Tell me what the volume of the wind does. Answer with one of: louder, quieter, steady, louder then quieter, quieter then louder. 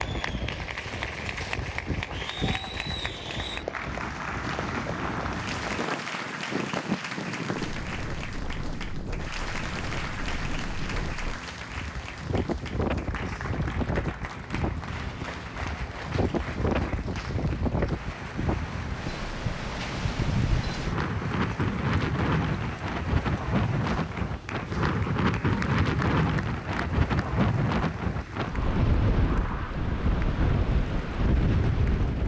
louder.